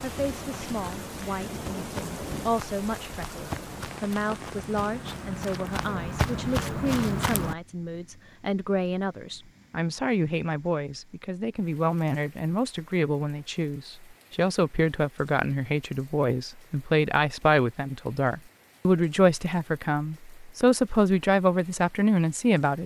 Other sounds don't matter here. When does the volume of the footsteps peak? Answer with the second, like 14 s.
7 s.